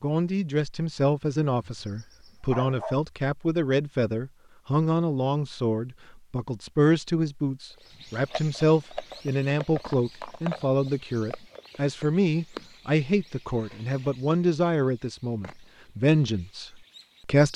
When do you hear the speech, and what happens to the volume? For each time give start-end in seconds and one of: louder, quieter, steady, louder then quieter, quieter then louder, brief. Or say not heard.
0.0-17.5 steady.